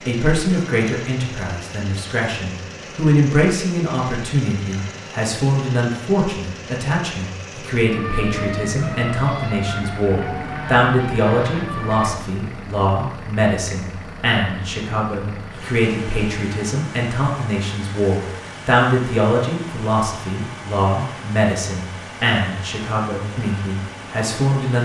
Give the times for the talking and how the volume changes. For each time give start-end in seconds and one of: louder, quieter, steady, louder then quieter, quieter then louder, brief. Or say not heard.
0.1-24.8 steady.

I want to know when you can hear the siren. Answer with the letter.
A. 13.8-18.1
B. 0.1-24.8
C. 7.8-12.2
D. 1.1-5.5
C.